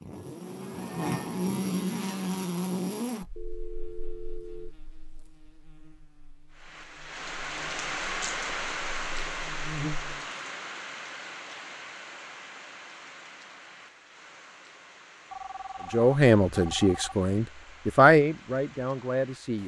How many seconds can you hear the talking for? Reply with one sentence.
The talking can be heard for 4 seconds in total.